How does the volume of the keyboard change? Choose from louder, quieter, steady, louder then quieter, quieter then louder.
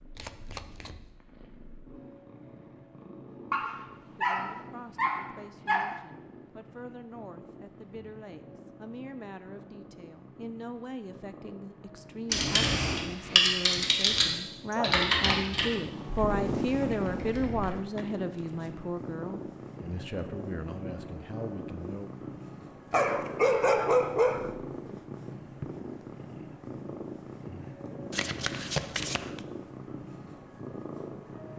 quieter.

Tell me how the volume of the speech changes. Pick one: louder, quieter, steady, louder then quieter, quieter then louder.
louder then quieter.